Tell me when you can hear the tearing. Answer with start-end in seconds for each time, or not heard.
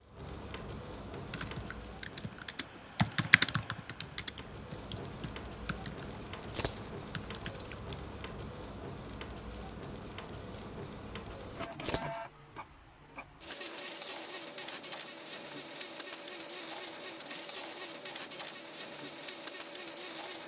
6.1-7.8, 11.3-12.2.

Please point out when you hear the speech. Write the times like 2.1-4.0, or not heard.
not heard.